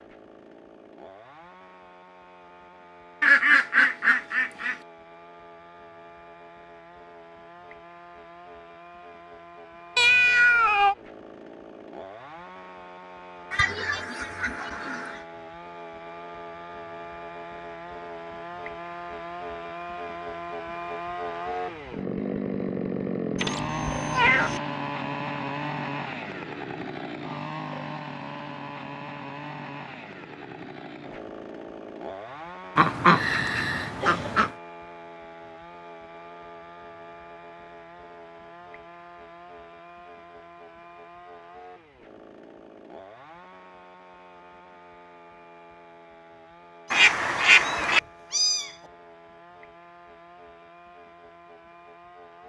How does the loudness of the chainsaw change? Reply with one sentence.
The volume of the chainsaw goes up, then down.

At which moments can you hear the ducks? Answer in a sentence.
You can hear the ducks from 3.2 to 4.8 s, from 13.5 to 15.2 s, from 32.8 to 34.5 s and from 46.9 to 48.0 s.